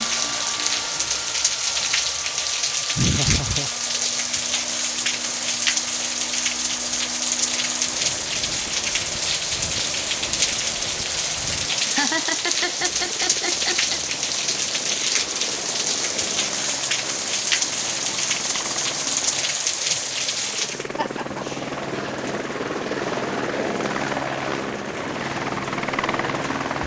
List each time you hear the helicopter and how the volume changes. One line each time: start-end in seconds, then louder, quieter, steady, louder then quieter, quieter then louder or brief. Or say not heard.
0.0-26.8 louder.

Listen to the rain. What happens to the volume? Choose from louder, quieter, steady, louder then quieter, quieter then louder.
quieter.